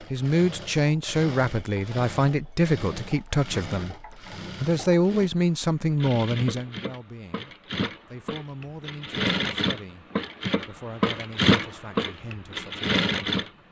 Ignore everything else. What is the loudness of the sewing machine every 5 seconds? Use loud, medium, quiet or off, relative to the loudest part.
quiet, medium, loud.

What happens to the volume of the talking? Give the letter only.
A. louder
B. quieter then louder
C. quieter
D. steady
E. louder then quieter
C.